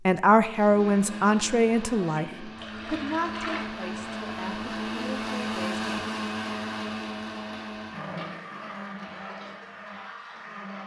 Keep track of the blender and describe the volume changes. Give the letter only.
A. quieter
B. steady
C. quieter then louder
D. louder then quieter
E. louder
D.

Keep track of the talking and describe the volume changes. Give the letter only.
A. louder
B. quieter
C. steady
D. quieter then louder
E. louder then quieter
B.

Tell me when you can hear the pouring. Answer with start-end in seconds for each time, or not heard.
2.5-3.8.